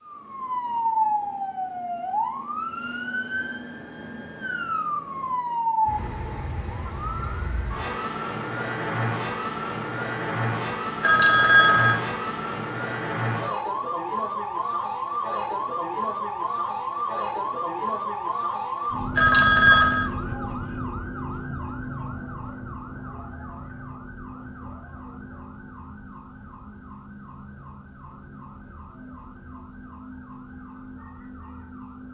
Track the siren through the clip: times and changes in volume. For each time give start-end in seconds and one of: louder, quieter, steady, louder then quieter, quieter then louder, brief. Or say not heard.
0.0-32.0 quieter.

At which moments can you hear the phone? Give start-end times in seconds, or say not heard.
11.0-12.0, 19.1-20.1.